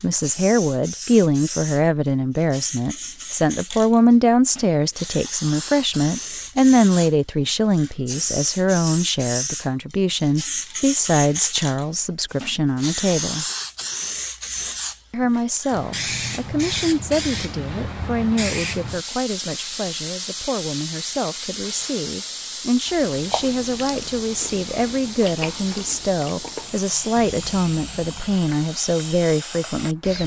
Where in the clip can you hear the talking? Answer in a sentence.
The talking can be heard from 0.0 to 13.4 s and from 15.1 to 30.2 s.